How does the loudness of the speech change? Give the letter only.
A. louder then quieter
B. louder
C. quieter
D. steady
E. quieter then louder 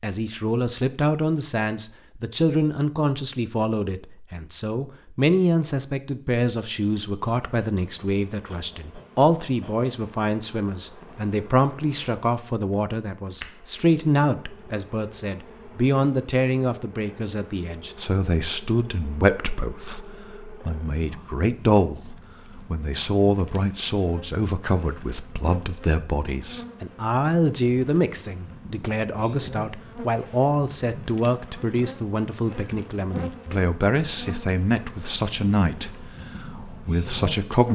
D.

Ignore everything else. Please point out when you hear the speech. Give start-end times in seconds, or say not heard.
0.0-37.7.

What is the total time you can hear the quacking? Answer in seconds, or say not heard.
not heard.